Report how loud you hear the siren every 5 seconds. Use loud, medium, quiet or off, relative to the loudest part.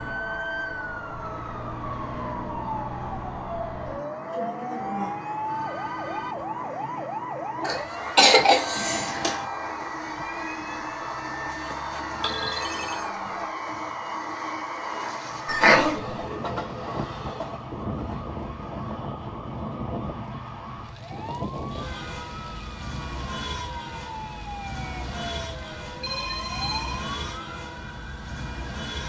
loud, loud, medium, medium, medium, medium.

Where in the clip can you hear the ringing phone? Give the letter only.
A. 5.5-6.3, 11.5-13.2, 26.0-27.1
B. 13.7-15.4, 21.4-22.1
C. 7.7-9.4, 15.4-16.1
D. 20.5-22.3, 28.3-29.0
A.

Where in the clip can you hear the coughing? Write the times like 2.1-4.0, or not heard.
7.7-9.4, 15.4-16.1.